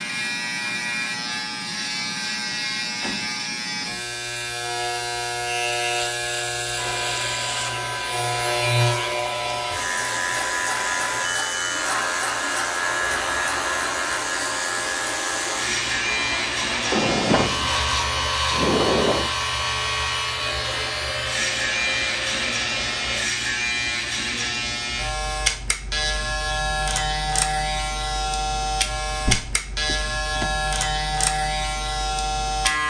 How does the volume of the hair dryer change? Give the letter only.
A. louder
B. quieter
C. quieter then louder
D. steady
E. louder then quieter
D.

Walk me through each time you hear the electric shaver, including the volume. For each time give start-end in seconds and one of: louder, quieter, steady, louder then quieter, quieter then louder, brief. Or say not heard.
0.0-32.8 steady.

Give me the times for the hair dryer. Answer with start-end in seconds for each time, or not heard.
6.8-23.2.